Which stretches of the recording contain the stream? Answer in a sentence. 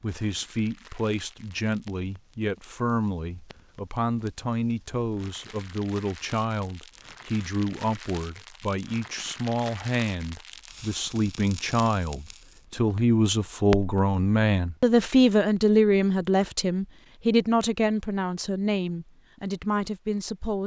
You can't hear the stream here.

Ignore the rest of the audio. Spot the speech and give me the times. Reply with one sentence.
The speech can be heard from 0.0 to 20.6 s.